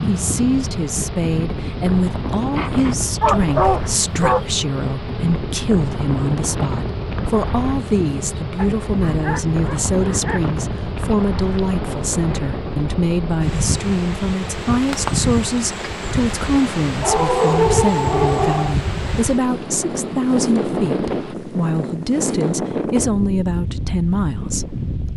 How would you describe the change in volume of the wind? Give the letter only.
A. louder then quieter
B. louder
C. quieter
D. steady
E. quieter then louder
D.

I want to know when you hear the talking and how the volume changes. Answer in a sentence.
You can hear the talking from 0.0 to 25.1 s, at a steady volume.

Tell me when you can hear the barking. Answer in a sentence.
You can hear the barking from 3.2 to 4.4 s, from 8.6 to 10.5 s and from 17.0 to 18.8 s.